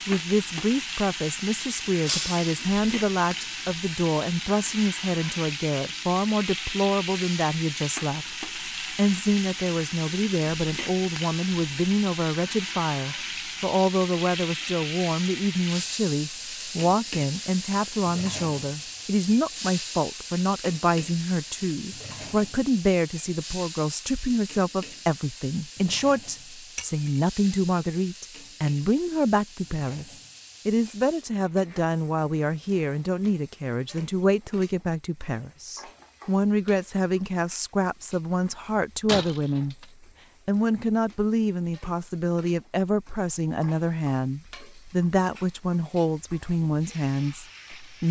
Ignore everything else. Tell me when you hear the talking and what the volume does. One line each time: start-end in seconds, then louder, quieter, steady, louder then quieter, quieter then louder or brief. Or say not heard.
0.1-39.8 steady
40.5-48.0 steady.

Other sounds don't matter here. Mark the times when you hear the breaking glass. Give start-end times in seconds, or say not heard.
2.0-2.5, 26.8-27.2, 39.0-39.9.